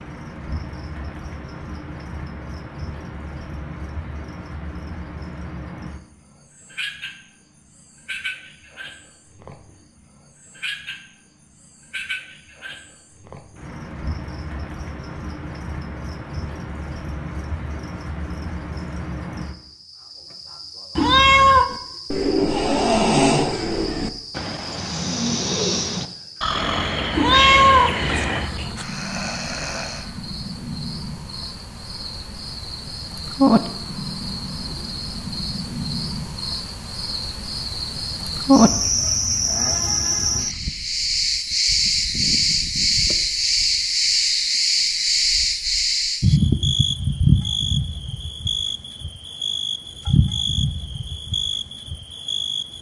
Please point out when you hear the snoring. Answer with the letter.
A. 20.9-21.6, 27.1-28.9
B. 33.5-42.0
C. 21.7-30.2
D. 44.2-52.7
C.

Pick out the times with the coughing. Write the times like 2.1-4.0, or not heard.
not heard.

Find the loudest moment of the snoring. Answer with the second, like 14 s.
23 s.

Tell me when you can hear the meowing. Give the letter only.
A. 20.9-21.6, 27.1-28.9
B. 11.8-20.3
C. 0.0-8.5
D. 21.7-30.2
A.